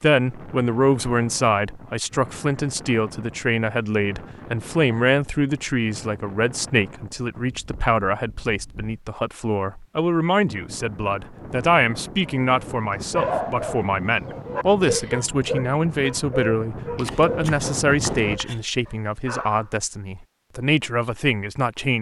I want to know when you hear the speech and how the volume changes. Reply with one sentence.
You can hear the speech from 0.0 to 21.9 s, at a steady volume.